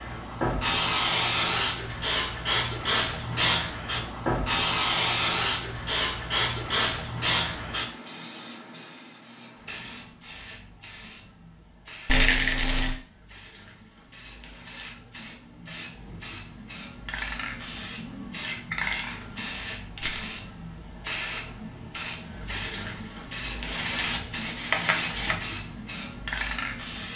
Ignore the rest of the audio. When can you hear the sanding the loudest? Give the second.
25 s.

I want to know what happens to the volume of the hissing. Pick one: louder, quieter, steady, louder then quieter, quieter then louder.
quieter then louder.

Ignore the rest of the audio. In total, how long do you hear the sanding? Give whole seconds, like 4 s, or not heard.
2 s.